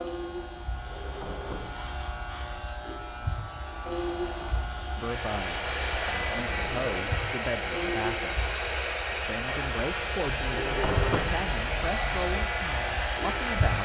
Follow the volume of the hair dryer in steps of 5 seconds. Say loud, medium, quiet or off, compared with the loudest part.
quiet, loud, loud.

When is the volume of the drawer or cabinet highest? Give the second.
11 s.